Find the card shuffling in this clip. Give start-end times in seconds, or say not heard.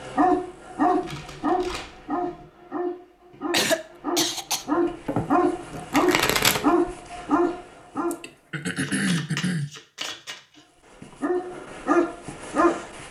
1.0-2.5, 4.8-6.8, 8.8-10.6.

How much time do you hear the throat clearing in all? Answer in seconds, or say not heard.
3 s.